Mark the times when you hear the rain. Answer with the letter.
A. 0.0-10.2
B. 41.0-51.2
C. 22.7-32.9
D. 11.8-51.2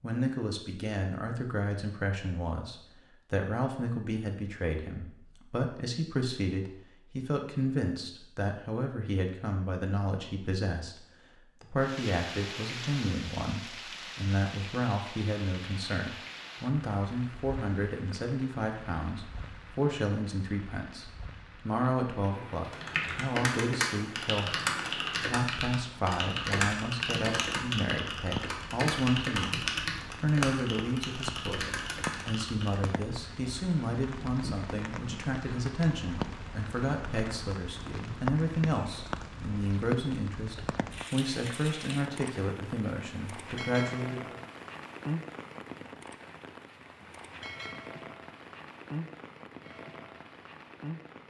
D.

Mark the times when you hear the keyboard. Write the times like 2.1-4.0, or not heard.
22.7-32.9.